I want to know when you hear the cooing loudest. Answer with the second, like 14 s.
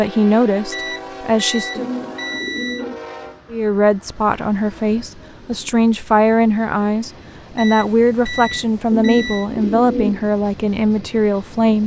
10 s.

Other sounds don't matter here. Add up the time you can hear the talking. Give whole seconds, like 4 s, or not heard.
10 s.